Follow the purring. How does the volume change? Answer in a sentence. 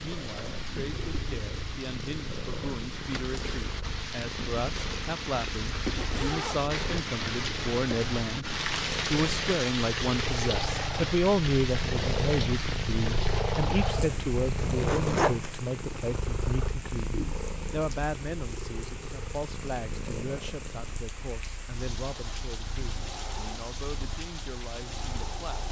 The volume of the purring goes up, then down.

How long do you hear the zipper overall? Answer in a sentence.
The zipper can be heard for 2 seconds in total.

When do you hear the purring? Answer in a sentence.
You can hear the purring from 0.0 to 25.5 s.